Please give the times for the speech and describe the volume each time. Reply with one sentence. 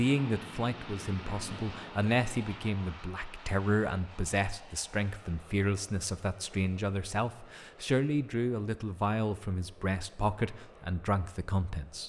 You can hear the speech from 0.0 to 12.0 s, at a steady volume.